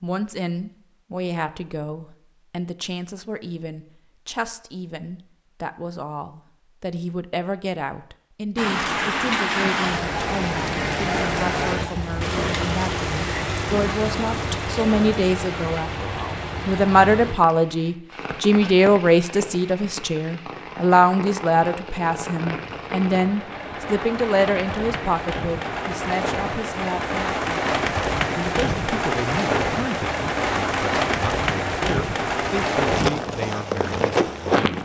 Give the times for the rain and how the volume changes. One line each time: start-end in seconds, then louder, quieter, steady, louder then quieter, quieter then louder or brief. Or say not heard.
8.6-34.8 quieter then louder.